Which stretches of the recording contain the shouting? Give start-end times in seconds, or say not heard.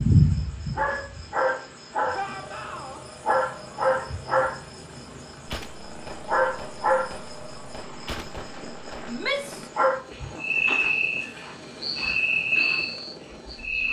2.1-3.0, 9.1-9.7.